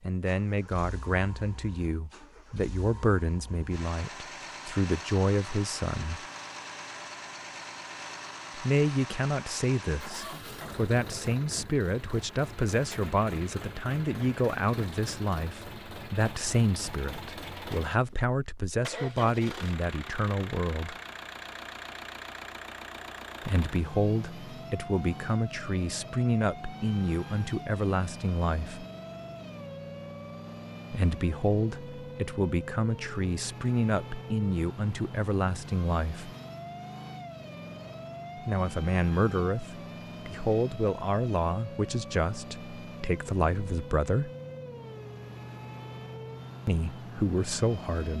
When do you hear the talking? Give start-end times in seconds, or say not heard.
0.0-6.2, 8.6-20.9, 23.4-28.9, 30.9-36.3, 38.4-44.3, 46.6-48.1.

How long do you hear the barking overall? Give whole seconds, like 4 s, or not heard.
not heard.